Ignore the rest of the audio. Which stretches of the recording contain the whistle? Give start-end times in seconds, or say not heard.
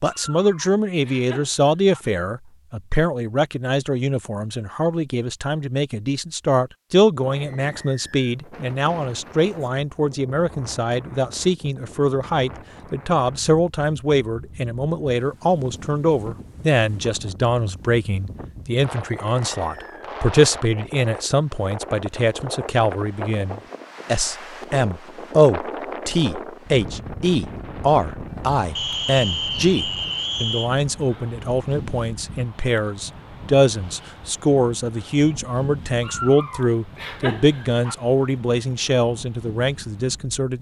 7.3-8.3, 19.1-20.1, 28.8-30.7.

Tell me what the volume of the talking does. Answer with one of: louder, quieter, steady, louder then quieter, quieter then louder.
steady.